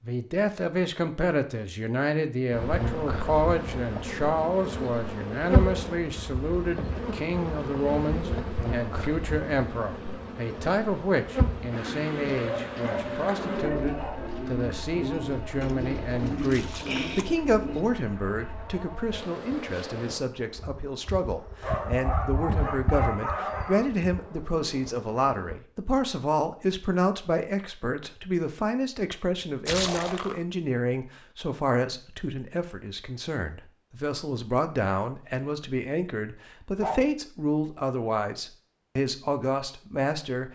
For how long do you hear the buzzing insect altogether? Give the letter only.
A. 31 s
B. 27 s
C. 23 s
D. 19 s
C.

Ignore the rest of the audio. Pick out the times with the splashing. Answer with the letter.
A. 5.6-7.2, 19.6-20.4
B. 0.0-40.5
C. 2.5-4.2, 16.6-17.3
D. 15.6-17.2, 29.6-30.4
D.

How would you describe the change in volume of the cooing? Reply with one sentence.
The volume of the cooing stays about the same.